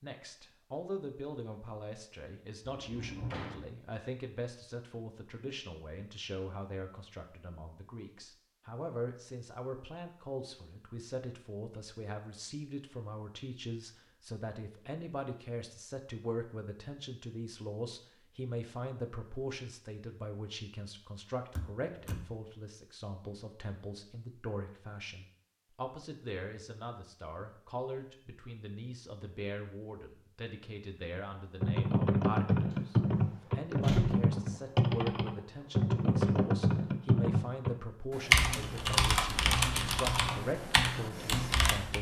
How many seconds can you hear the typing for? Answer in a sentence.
You can hear the typing for 10 seconds altogether.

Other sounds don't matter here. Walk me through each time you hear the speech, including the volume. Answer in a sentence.
The speech can be heard from 0.0 to 41.9 s, at a steady volume.